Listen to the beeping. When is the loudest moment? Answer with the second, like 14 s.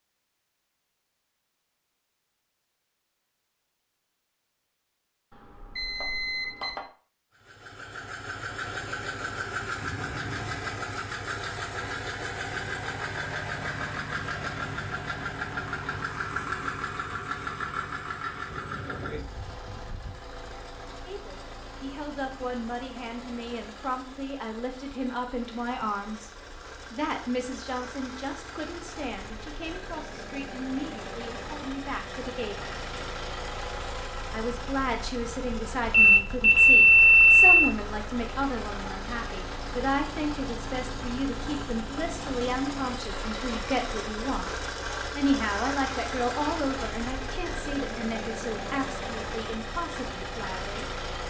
37 s.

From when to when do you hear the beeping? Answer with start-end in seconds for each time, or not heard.
5.3-6.8, 36.0-37.5.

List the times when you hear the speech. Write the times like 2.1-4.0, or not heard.
21.1-26.3, 26.9-32.8, 34.3-50.9.